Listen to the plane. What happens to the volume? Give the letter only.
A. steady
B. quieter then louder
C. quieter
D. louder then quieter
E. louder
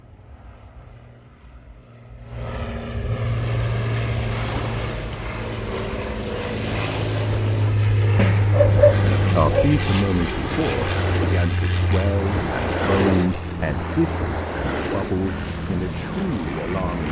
D.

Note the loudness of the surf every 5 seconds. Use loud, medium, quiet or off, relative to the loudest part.
medium, medium, loud, medium.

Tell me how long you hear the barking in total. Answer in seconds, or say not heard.
2 s.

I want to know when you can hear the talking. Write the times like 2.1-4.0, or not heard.
9.3-17.0.